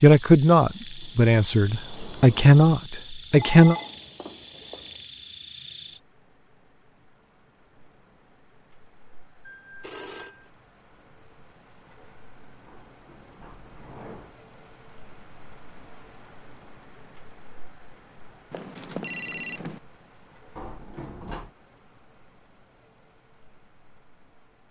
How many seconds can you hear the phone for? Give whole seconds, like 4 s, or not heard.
4 s.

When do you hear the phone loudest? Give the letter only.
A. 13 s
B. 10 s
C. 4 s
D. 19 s
D.